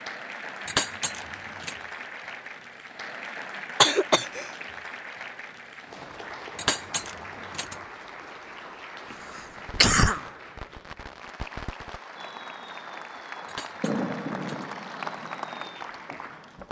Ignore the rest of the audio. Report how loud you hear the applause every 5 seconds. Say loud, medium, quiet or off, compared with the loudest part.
loud, medium, medium, loud.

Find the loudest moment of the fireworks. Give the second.
14 s.